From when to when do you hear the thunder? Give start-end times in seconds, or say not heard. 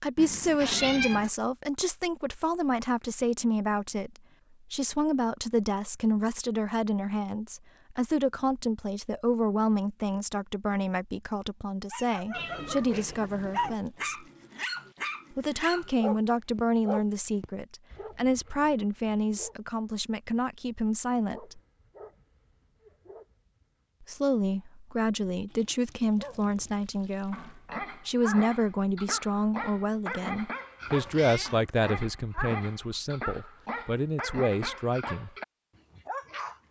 not heard.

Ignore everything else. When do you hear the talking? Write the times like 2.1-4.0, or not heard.
0.0-4.1, 4.7-14.2, 15.3-21.6, 24.0-35.3.